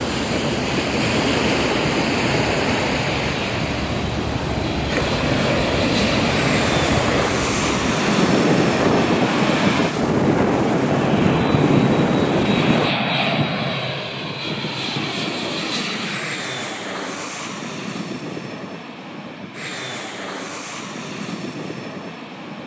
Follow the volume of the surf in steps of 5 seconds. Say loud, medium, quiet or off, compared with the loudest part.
loud, loud, loud, off, off.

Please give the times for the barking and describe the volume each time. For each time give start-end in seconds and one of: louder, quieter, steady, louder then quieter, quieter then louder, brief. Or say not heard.
not heard.